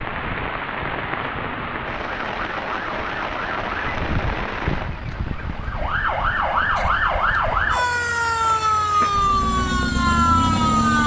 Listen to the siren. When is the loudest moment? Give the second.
9 s.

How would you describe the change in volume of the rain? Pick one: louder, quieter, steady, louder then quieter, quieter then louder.
quieter.